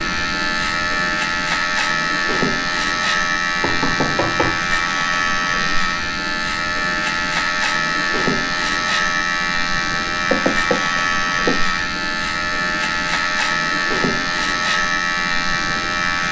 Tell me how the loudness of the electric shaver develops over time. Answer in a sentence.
The loudness of the electric shaver stays about the same.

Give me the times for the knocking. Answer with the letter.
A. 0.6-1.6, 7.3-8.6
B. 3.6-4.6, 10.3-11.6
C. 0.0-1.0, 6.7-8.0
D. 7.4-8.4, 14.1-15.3
B.